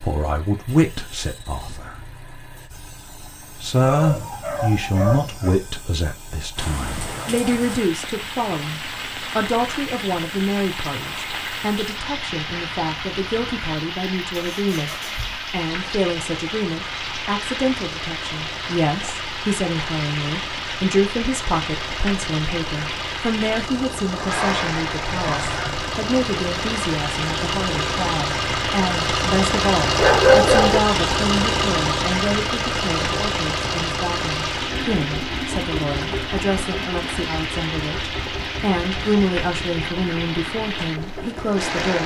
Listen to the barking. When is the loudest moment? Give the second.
30 s.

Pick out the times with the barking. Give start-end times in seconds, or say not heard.
3.8-5.6, 24.1-25.9, 29.9-30.8.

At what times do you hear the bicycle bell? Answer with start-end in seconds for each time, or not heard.
not heard.